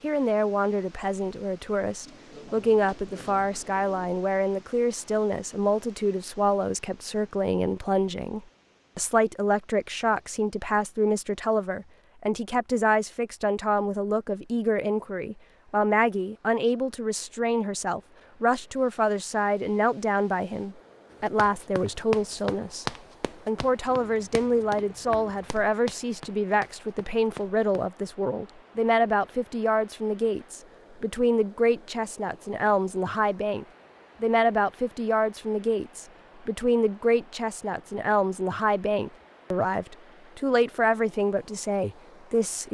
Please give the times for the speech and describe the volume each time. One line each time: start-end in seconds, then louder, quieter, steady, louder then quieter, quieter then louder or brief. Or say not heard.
0.0-42.7 steady.